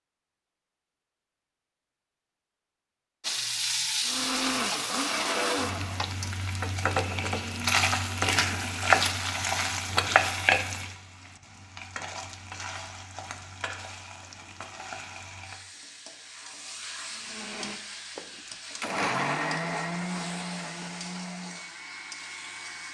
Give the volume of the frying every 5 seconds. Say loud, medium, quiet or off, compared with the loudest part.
loud, loud, medium, quiet, quiet.